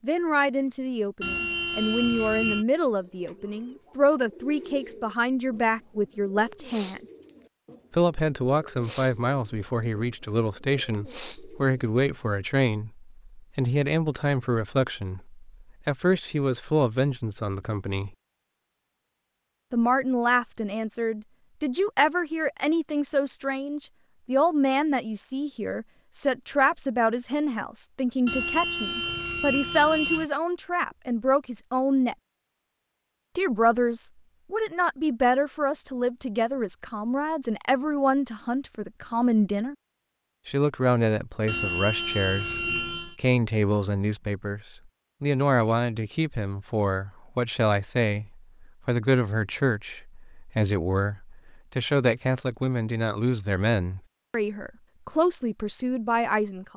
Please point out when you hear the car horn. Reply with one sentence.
The car horn can be heard from 1.2 to 2.6 s, from 28.2 to 30.3 s and from 41.5 to 43.1 s.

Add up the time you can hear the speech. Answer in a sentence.
The speech can be heard for 52 seconds in total.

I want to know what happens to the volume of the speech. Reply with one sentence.
The loudness of the speech stays about the same.